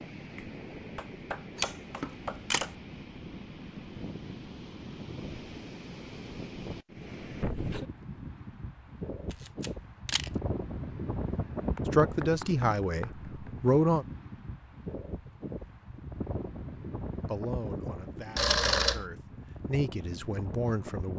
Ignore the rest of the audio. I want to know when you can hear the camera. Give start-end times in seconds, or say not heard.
1.6-2.8, 9.3-10.3, 18.4-19.1.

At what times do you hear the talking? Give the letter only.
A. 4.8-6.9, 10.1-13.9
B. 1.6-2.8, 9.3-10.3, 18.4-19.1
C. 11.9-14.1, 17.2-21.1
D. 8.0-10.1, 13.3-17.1
C.